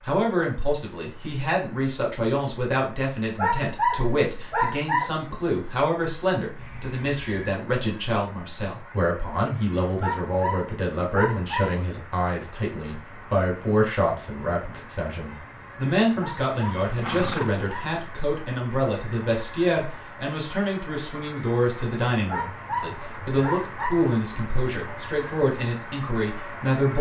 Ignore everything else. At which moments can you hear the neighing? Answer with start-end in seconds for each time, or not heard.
6.5-7.5, 16.6-17.8.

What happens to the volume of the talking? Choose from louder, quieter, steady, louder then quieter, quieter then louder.
steady.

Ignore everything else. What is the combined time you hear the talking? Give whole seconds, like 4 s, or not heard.
27 s.